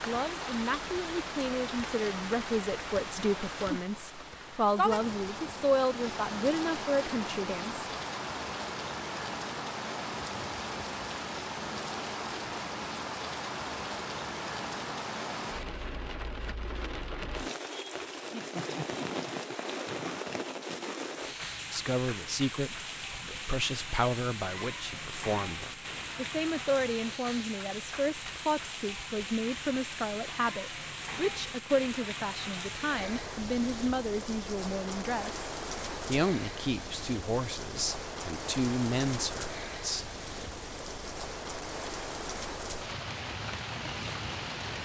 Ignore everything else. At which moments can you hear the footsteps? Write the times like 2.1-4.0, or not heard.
not heard.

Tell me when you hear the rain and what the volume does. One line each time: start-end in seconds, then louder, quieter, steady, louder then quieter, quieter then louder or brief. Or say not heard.
0.0-44.8 steady.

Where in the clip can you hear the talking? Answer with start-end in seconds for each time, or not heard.
0.0-7.8, 21.7-40.1.